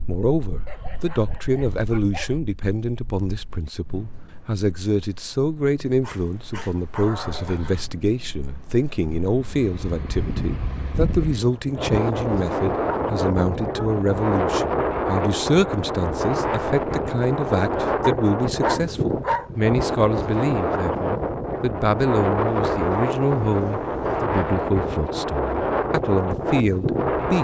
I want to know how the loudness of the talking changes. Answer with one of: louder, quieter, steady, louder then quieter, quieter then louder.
steady.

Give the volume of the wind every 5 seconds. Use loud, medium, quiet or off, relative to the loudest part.
quiet, quiet, loud, loud, loud, loud.